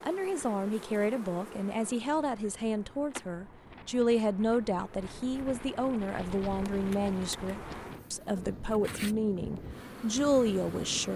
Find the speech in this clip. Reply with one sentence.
The speech can be heard from 0.0 to 11.1 s.